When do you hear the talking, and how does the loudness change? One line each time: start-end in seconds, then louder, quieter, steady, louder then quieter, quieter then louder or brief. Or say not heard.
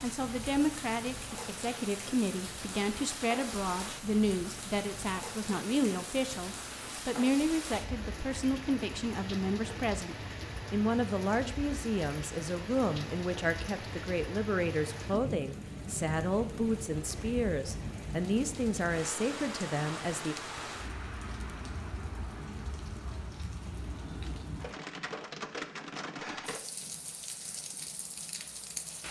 0.0-20.4 steady.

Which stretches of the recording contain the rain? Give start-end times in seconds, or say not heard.
0.0-29.0.